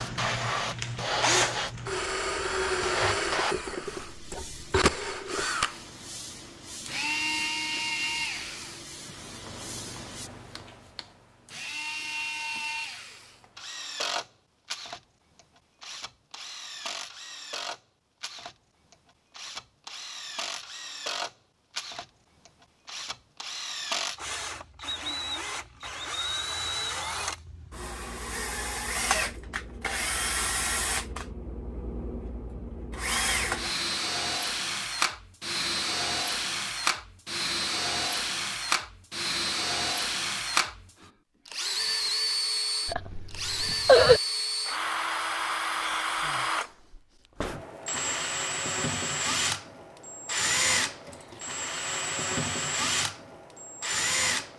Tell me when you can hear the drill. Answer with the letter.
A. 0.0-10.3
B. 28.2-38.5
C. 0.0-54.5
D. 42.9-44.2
C.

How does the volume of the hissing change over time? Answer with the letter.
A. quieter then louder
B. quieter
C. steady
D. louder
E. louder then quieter
B.